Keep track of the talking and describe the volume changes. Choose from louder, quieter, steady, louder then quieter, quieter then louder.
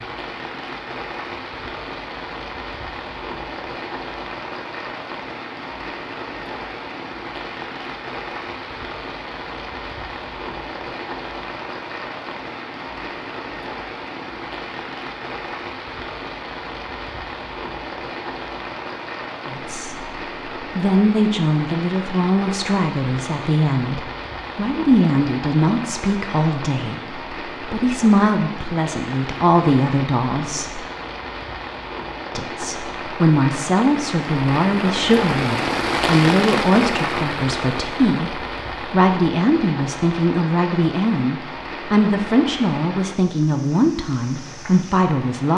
steady.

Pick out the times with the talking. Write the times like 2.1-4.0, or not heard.
19.4-30.8, 32.4-45.5.